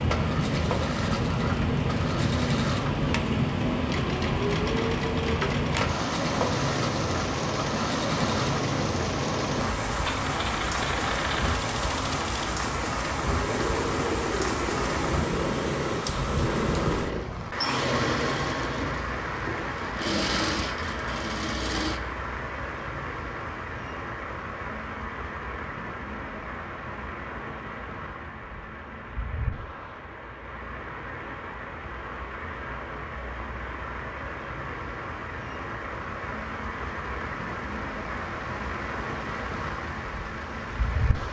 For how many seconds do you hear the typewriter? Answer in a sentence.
You can't hear the typewriter here.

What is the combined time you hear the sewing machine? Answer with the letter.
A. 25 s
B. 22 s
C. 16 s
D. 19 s
B.